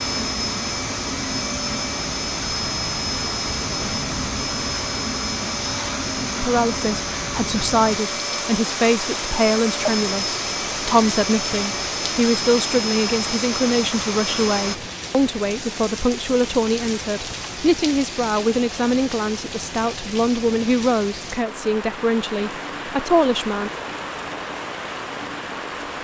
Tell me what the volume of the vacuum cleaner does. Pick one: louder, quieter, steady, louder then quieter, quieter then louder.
steady.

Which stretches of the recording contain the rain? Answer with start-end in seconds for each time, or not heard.
0.0-25.9.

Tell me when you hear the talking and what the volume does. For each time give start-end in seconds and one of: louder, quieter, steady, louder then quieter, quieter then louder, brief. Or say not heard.
6.4-23.7 steady.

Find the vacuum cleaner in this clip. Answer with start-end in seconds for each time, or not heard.
0.0-14.8.